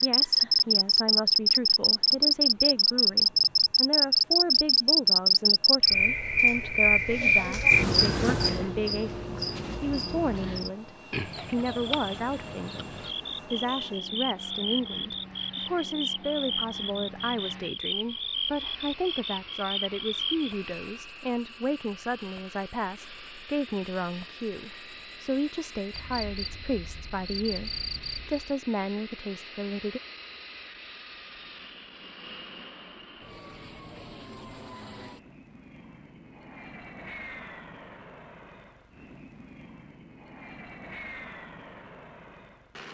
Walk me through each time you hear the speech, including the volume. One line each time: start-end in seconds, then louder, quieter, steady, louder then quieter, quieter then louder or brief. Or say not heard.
0.0-30.0 steady.